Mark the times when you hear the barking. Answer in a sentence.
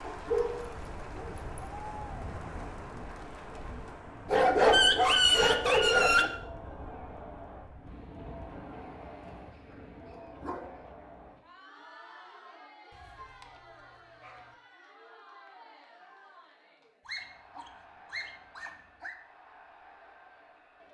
The barking can be heard from 0.1 to 1.3 s, from 4.2 to 6.3 s, from 9.2 to 10.8 s, from 12.9 to 14.6 s and from 17.1 to 19.1 s.